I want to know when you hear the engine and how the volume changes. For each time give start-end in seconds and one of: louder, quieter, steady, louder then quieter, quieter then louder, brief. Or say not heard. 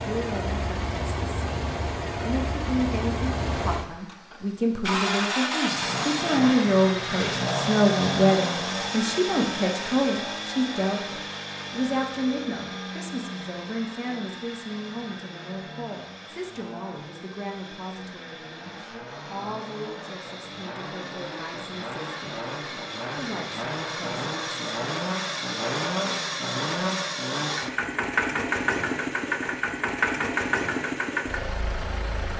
0.0-32.3 quieter then louder.